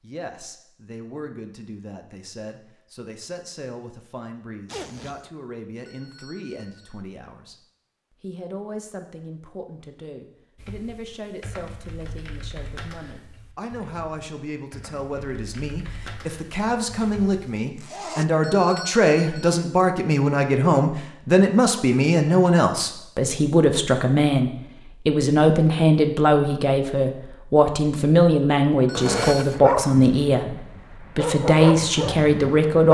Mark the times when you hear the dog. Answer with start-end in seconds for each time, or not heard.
29.5-32.8.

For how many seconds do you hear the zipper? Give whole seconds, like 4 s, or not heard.
2 s.